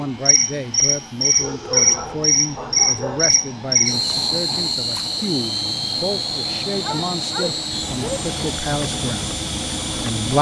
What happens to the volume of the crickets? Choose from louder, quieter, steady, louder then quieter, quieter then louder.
quieter.